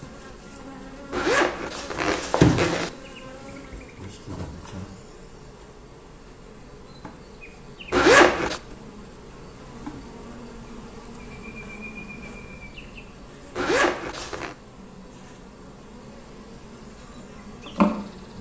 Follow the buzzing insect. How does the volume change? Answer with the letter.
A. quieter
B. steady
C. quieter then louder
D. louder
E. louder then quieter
D.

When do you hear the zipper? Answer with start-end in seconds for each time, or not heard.
1.1-2.9, 7.9-8.6, 13.6-14.6.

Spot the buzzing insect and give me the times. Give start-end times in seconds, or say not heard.
0.0-18.3.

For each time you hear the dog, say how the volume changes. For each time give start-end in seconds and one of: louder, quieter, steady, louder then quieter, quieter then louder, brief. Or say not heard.
not heard.